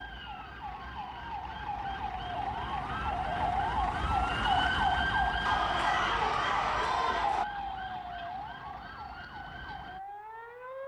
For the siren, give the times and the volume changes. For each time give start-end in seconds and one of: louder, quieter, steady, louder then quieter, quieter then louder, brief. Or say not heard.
0.0-10.8 louder then quieter.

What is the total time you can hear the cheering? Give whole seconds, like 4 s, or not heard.
2 s.